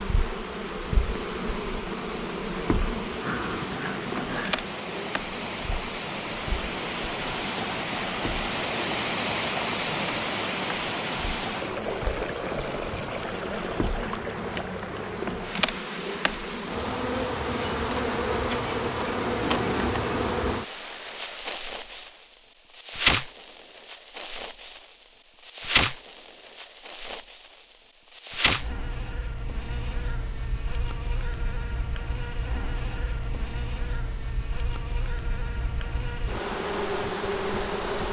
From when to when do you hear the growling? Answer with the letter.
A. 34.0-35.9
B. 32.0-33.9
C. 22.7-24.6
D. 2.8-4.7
D.